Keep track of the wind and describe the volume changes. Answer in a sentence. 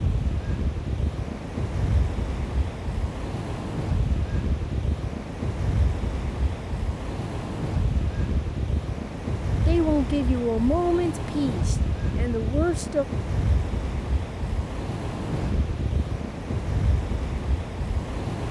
The volume of the wind stays about the same.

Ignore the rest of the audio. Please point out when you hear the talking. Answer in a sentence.
You can hear the talking from 9.7 to 13.1 s.